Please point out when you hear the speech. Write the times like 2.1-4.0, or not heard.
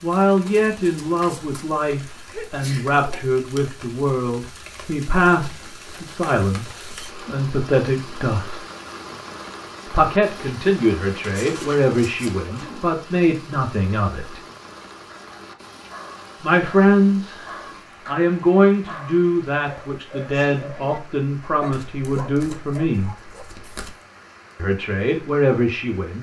0.0-8.6, 9.8-14.4, 16.4-23.1, 24.6-26.1.